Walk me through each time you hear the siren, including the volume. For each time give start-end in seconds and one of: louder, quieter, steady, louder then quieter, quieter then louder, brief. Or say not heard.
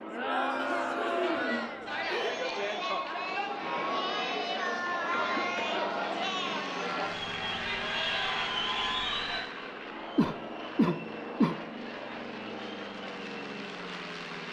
not heard.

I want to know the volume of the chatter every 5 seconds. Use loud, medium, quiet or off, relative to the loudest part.
loud, loud, quiet.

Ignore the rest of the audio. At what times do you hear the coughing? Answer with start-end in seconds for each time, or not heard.
0.6-2.4, 5.1-5.9, 10.2-11.6.